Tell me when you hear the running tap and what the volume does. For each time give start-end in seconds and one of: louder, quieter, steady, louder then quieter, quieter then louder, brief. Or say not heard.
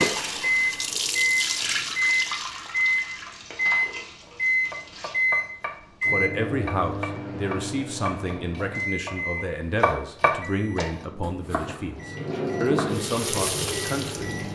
0.0-5.2 quieter
11.9-14.5 brief.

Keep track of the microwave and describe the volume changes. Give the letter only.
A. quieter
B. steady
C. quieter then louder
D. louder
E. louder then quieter
A.